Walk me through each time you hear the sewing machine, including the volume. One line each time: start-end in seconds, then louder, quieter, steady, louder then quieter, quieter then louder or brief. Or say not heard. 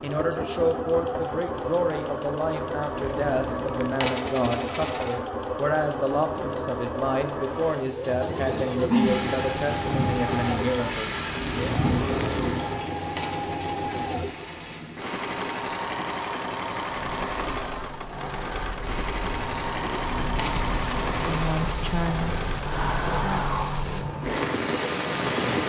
0.0-25.6 steady.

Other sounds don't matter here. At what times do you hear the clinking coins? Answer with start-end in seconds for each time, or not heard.
4.0-5.2, 13.2-14.8, 20.4-22.1.